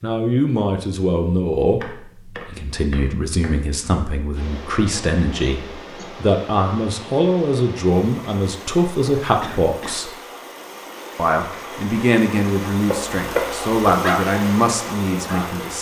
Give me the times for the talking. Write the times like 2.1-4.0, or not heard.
0.0-10.1, 11.2-15.7.